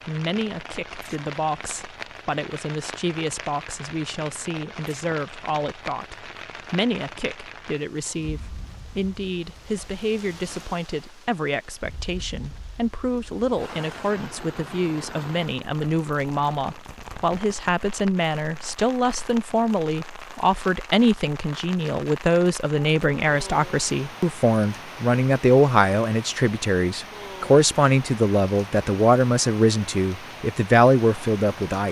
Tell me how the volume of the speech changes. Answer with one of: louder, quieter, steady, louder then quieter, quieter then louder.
louder.